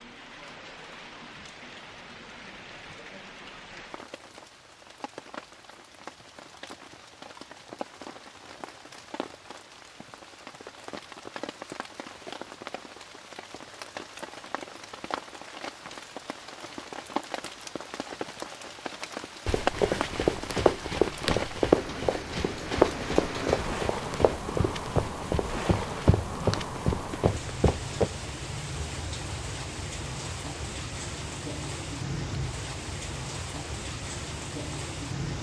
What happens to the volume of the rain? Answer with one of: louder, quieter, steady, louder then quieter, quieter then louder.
louder.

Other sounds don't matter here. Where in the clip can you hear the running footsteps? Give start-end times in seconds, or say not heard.
19.4-28.1.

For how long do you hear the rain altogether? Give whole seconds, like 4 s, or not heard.
35 s.